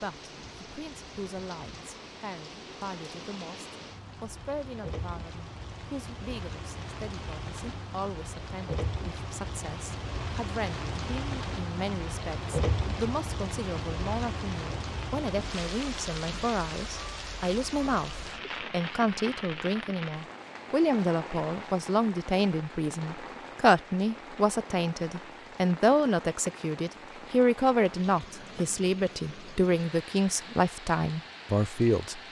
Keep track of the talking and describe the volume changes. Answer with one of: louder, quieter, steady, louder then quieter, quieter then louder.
louder.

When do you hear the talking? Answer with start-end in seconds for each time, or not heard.
0.0-32.2.